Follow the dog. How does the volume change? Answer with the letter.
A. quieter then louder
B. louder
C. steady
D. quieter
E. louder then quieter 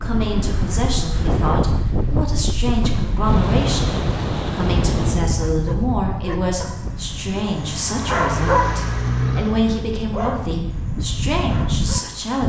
E.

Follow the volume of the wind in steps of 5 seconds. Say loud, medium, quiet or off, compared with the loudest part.
loud, medium, loud.